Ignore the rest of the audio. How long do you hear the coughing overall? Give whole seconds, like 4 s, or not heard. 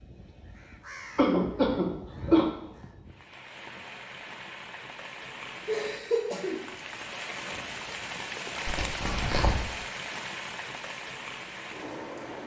3 s.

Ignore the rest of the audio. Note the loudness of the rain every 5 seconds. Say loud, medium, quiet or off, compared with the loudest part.
medium, loud, loud.